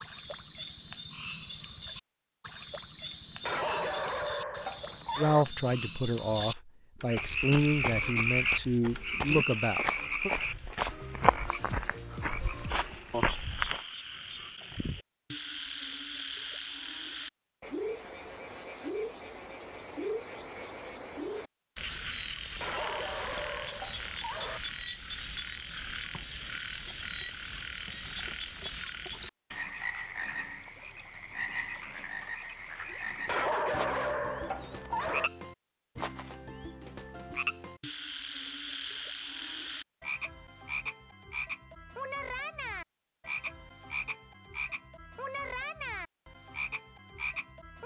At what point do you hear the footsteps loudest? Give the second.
11 s.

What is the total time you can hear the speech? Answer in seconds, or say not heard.
5 s.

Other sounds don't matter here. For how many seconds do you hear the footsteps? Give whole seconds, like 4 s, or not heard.
7 s.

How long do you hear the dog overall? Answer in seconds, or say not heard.
6 s.